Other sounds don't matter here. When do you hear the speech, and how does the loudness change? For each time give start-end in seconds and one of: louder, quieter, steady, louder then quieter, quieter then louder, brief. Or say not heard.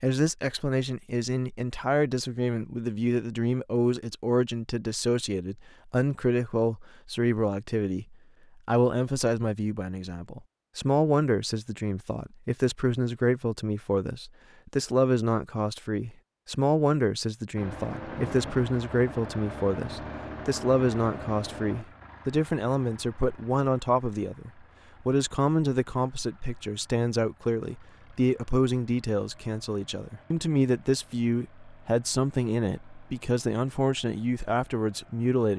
0.0-35.5 steady.